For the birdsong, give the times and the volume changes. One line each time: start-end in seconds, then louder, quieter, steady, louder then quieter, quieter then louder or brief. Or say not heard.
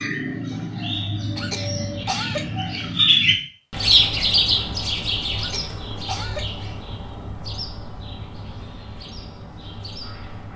0.0-10.5 louder then quieter.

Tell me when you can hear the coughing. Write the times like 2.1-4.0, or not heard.
1.4-2.5, 5.3-6.5.